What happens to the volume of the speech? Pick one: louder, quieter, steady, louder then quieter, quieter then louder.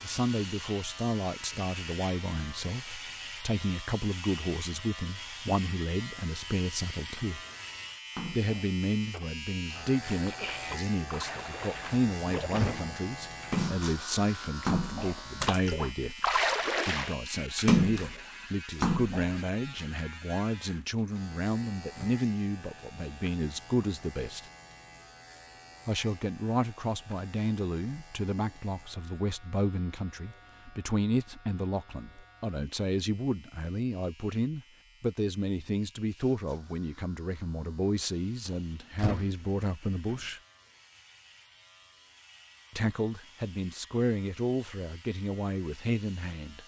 steady.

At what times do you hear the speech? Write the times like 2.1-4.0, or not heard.
0.0-7.4, 8.3-24.4, 25.9-40.4, 42.7-46.6.